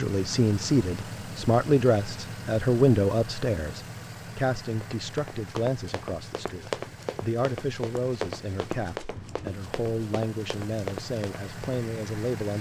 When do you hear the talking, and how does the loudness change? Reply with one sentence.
The talking can be heard from 0.0 to 12.5 s, getting quieter.